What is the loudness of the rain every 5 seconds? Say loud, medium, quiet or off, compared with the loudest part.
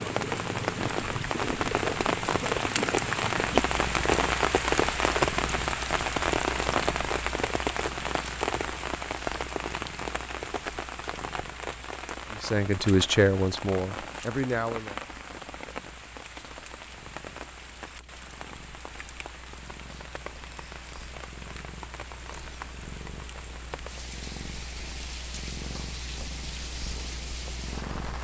loud, loud, medium, quiet, quiet, quiet.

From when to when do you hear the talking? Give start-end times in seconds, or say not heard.
12.3-15.0.